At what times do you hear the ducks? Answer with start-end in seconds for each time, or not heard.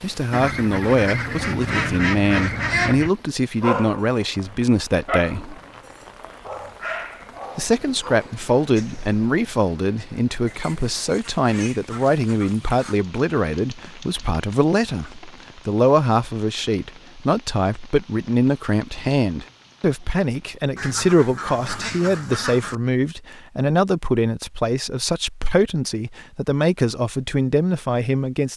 0.3-3.1, 10.4-12.9, 20.8-22.8.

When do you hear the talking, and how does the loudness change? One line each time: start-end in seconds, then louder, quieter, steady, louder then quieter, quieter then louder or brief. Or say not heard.
0.0-5.5 steady
7.5-28.5 steady.